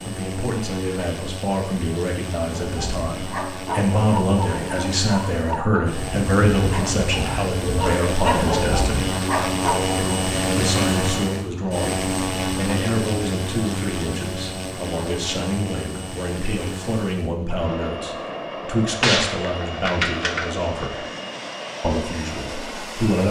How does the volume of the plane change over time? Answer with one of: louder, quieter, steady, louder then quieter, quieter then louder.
louder then quieter.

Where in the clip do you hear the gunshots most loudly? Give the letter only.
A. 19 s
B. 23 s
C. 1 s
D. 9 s
A.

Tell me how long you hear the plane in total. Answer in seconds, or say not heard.
23 s.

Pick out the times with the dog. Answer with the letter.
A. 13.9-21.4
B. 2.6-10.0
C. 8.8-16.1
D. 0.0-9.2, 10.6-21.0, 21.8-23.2
B.